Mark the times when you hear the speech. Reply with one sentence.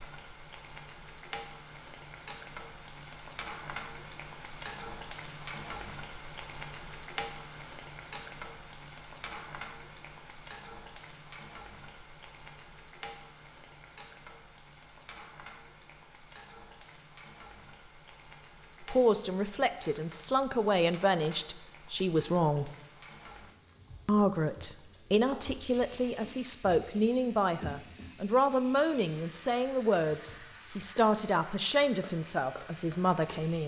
You can hear the speech from 18.9 to 22.7 s and from 24.1 to 33.6 s.